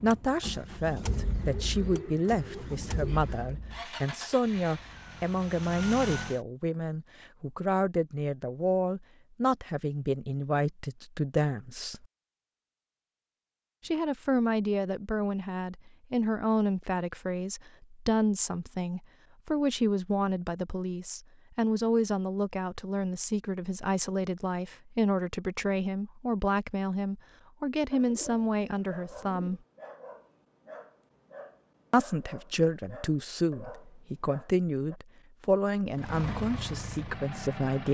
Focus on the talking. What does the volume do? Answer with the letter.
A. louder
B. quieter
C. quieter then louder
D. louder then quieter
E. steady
E.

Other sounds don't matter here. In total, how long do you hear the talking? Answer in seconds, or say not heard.
34 s.